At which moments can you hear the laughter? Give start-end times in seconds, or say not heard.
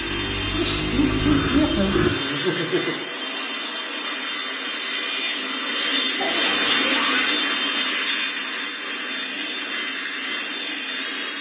0.4-3.0, 6.2-7.3.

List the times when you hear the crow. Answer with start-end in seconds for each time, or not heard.
0.0-2.1.